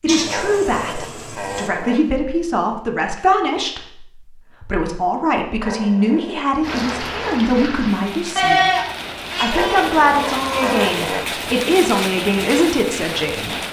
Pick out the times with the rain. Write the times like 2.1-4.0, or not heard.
6.6-13.6.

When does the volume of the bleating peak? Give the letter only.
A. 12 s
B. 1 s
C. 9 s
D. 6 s
C.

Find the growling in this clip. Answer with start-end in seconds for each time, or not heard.
0.2-2.1, 5.6-7.3, 9.5-11.3.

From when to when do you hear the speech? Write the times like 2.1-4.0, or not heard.
0.0-8.6, 9.4-13.6.